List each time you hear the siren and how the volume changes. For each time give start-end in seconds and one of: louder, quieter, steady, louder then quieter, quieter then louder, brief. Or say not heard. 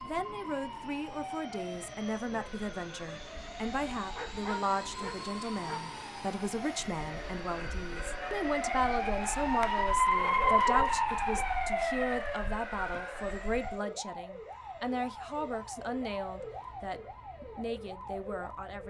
0.0-18.8 louder then quieter.